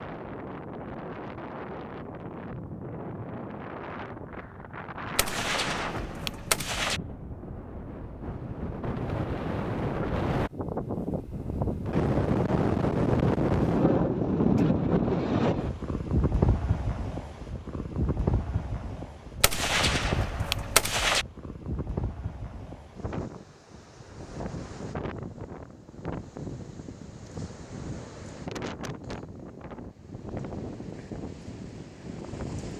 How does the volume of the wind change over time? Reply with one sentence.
The loudness of the wind goes up, then down.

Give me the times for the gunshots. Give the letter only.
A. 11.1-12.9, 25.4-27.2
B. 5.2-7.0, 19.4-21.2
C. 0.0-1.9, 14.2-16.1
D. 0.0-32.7
B.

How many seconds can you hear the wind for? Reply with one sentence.
You can hear the wind for 33 seconds altogether.